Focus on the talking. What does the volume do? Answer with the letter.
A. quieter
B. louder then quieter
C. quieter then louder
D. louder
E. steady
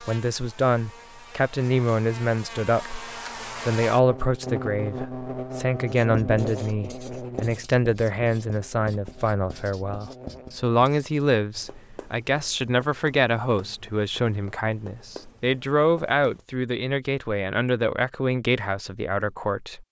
E.